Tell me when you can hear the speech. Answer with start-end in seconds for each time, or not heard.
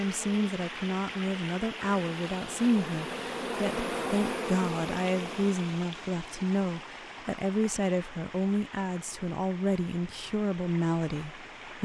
0.0-11.8.